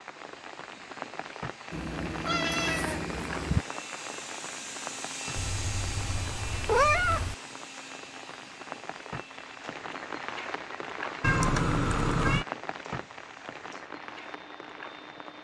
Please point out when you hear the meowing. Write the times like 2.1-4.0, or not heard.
1.7-3.6, 5.3-7.3, 11.2-12.4.